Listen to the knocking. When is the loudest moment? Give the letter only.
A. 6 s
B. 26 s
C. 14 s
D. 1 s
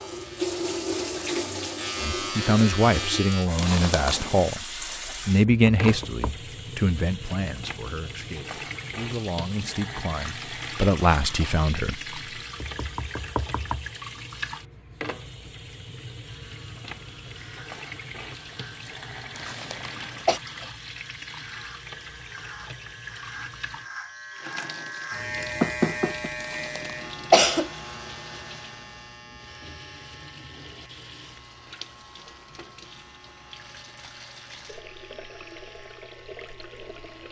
B.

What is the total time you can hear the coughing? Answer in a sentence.
The coughing can be heard for 3 seconds in total.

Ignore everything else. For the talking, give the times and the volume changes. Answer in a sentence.
The talking can be heard from 2.0 to 12.0 s, getting quieter then louder.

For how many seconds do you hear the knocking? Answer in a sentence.
You can hear the knocking for 3 seconds altogether.